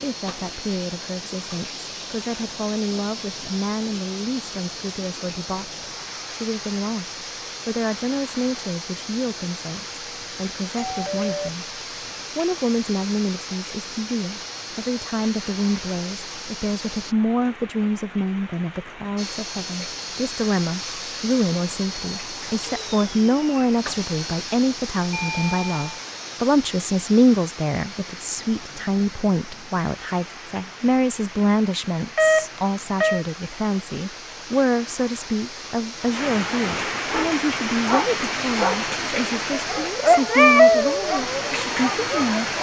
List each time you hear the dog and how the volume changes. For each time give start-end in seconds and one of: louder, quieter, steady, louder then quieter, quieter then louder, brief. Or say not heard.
37.1-42.5 louder then quieter.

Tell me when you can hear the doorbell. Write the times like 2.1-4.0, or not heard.
10.8-11.5, 25.1-26.0, 32.1-33.2.